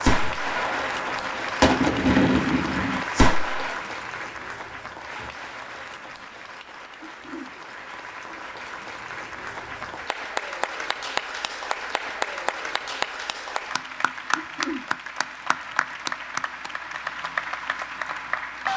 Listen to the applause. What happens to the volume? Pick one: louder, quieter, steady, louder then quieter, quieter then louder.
quieter then louder.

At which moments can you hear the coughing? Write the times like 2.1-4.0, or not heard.
7.0-7.5, 14.3-14.8.